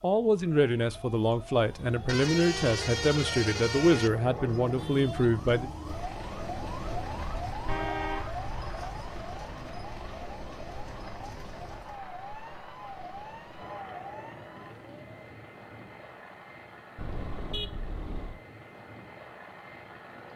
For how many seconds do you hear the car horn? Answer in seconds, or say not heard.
4 s.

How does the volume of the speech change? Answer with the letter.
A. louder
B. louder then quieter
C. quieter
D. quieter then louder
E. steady
E.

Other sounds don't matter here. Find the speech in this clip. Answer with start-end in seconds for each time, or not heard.
0.0-5.7.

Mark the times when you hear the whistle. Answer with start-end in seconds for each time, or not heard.
not heard.